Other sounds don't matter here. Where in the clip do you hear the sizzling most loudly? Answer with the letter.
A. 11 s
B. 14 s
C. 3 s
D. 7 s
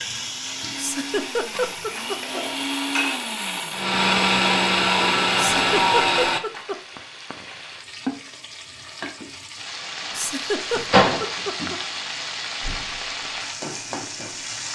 A.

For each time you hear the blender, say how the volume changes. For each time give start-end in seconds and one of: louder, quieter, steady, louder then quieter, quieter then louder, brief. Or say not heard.
0.0-6.4 louder.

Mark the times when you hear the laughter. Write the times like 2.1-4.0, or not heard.
0.8-2.4, 5.3-6.8, 10.1-11.8.